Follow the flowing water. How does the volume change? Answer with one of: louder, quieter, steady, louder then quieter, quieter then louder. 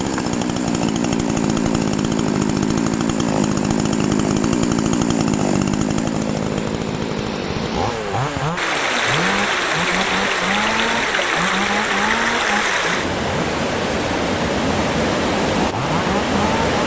louder.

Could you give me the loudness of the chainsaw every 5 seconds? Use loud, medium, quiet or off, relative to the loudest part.
loud, loud, medium, medium.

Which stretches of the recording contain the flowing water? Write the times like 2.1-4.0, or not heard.
0.0-16.8.